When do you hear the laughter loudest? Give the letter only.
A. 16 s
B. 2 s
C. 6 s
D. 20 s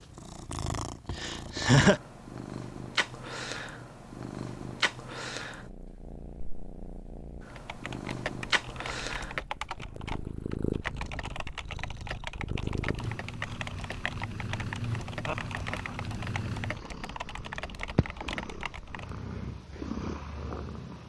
B.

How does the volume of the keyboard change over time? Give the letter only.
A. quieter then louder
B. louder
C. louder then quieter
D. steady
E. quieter
D.